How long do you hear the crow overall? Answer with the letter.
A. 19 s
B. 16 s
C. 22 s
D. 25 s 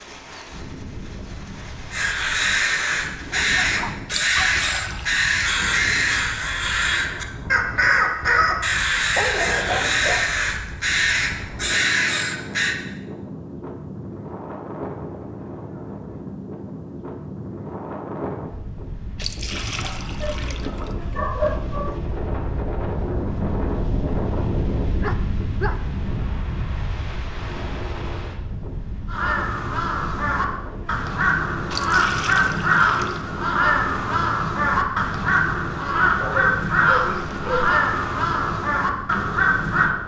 C.